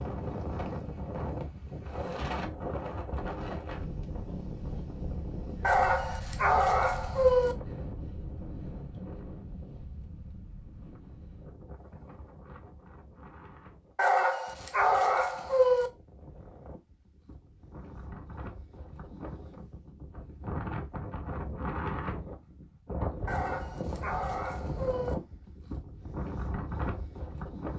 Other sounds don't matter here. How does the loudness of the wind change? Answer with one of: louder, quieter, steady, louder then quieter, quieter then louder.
quieter then louder.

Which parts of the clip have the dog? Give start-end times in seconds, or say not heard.
5.6-7.5, 13.9-15.9, 23.2-25.1.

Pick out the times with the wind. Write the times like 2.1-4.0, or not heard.
0.0-27.7.